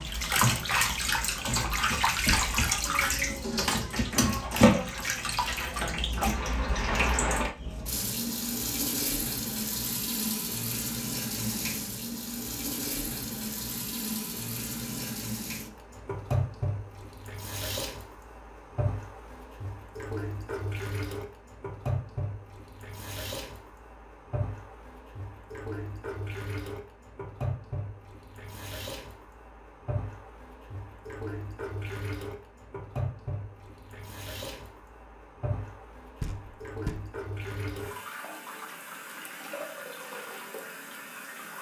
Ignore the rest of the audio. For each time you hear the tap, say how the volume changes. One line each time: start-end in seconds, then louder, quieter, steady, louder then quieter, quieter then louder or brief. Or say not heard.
0.0-41.5 quieter.